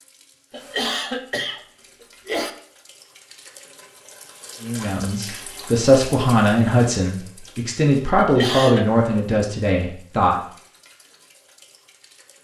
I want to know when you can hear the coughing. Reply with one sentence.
You can hear the coughing from 0.5 to 2.5 s and from 8.2 to 8.9 s.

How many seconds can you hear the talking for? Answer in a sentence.
The talking can be heard for 6 seconds in total.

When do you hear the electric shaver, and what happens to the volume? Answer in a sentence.
The electric shaver can't be heard in this clip.